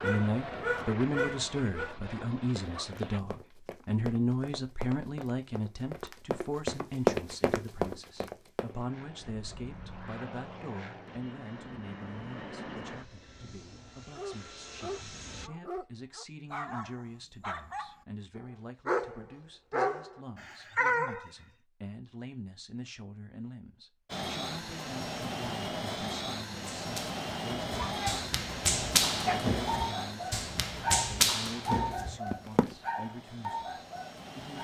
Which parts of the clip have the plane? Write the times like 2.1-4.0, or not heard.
0.0-3.2, 8.7-15.5, 24.1-34.5.